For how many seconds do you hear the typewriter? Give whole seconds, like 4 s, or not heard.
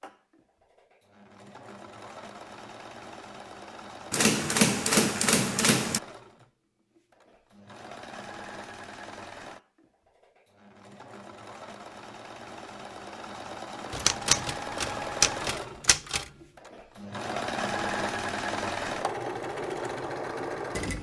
4 s.